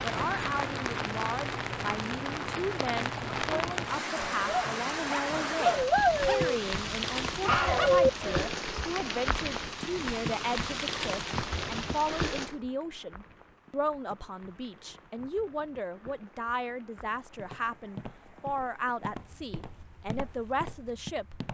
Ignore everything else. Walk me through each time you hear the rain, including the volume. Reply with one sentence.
You can hear the rain from 0.0 to 21.4 s, getting quieter.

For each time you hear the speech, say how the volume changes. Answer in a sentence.
You can hear the speech from 0.0 to 21.4 s, at a steady volume.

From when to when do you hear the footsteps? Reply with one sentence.
The footsteps can be heard from 17.3 to 21.4 s.